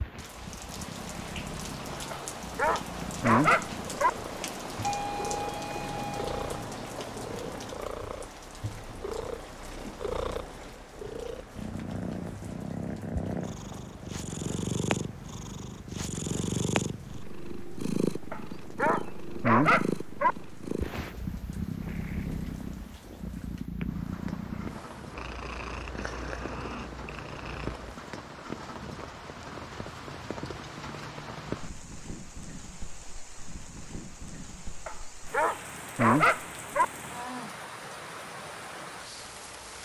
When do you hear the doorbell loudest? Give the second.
5 s.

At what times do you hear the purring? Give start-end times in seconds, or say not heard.
0.0-27.9.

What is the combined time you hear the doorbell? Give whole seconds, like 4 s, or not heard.
2 s.